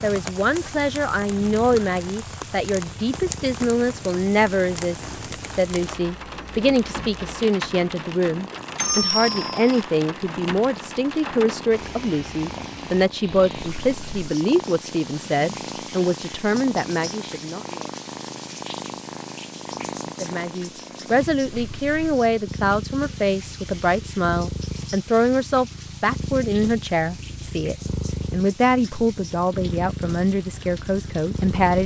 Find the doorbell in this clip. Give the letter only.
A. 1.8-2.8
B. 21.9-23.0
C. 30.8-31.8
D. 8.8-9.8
D.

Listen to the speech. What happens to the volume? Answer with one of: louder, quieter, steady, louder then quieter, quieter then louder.
steady.